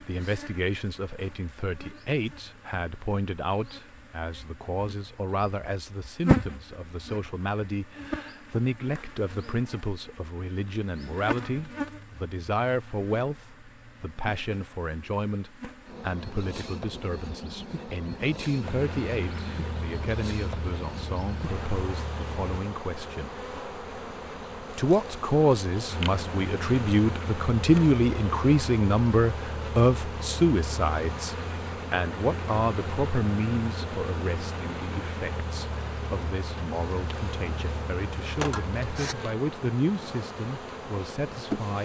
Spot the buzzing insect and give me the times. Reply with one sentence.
The buzzing insect can be heard from 0.0 to 41.8 s.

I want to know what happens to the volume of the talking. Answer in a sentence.
The loudness of the talking goes up, then down.